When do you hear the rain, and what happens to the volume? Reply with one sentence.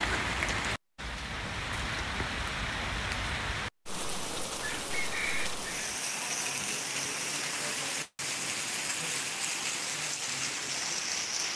The rain can be heard from 0.0 to 11.5 s, at a steady volume.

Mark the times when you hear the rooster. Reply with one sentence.
You can hear the rooster from 4.6 to 5.9 s.